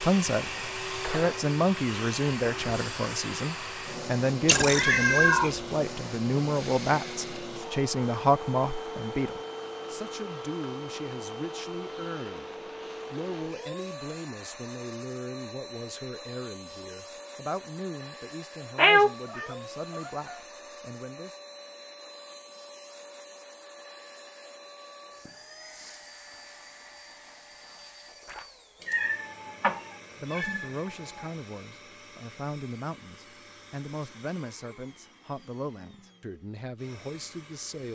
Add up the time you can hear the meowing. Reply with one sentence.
The meowing can be heard for 5 seconds in total.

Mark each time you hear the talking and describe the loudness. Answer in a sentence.
You can hear the talking from 0.0 to 21.4 s, getting quieter; and from 29.4 to 37.9 s, at a steady volume.